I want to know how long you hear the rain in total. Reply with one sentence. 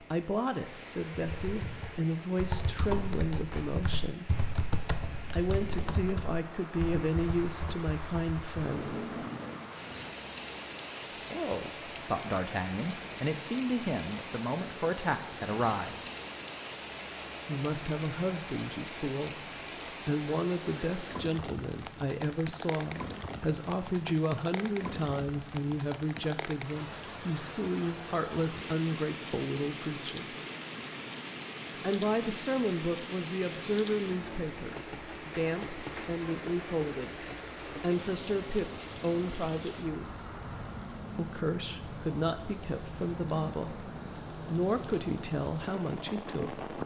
The rain can be heard for 47 seconds in total.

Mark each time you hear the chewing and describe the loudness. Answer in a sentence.
You can't hear the chewing here.